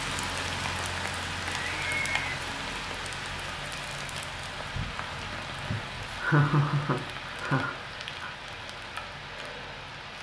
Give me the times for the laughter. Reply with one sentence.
The laughter can be heard from 1.4 to 2.1 s and from 5.7 to 8.3 s.